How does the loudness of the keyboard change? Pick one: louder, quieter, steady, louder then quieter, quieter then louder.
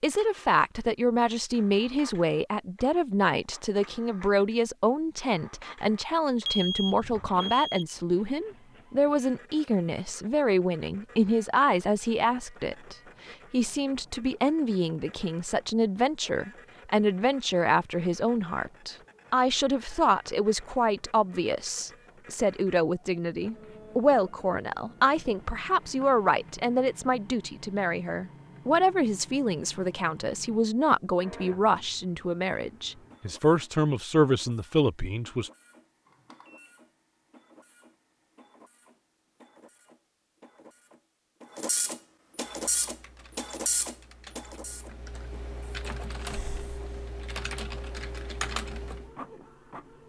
louder.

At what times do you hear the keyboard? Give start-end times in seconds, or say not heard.
42.5-49.1.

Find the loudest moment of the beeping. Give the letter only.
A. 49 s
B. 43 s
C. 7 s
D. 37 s
C.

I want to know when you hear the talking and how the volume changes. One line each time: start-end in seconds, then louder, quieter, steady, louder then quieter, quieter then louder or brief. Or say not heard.
0.0-35.5 steady.